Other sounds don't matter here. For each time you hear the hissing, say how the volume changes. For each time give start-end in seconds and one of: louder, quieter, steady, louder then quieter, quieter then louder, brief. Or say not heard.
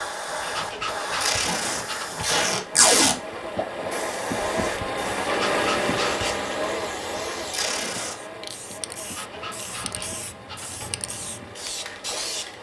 0.0-12.5 quieter.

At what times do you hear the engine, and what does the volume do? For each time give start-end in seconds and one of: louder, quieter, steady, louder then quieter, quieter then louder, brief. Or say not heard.
0.0-12.5 louder then quieter.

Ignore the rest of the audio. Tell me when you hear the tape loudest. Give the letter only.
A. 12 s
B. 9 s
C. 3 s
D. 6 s
C.